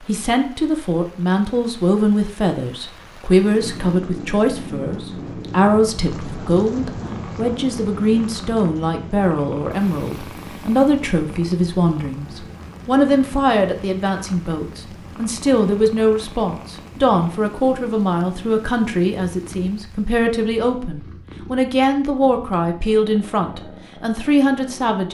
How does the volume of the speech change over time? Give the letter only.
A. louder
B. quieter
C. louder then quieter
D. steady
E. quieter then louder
D.